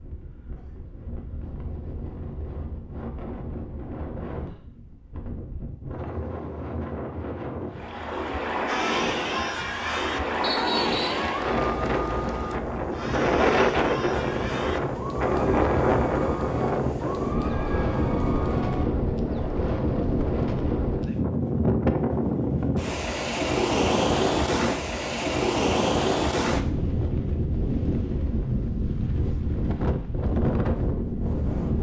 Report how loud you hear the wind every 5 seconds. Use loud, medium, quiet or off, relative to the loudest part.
quiet, medium, loud, loud, loud, loud, loud.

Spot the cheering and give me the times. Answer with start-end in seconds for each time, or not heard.
8.7-18.9.